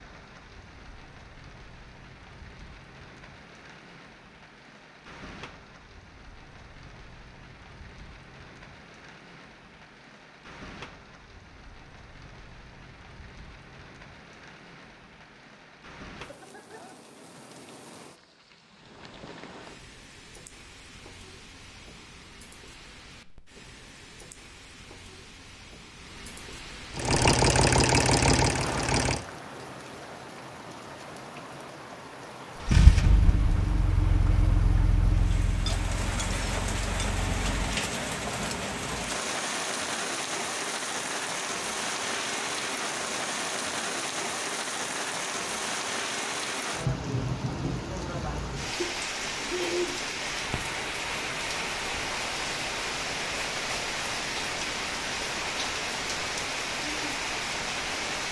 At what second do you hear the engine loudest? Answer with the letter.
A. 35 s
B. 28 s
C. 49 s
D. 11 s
B.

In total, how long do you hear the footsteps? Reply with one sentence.
You can't hear the footsteps here.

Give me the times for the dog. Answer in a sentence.
The dog can't be heard in this clip.